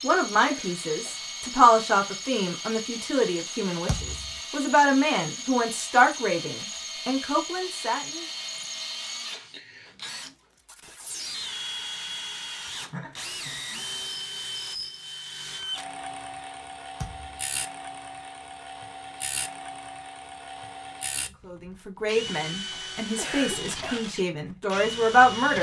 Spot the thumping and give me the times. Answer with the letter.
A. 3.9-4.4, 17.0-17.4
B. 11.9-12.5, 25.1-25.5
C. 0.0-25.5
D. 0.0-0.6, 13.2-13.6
A.